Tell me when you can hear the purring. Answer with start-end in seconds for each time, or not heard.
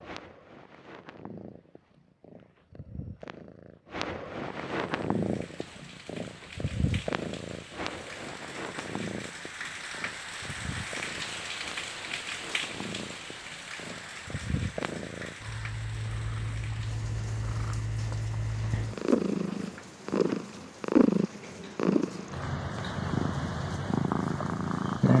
0.0-25.1.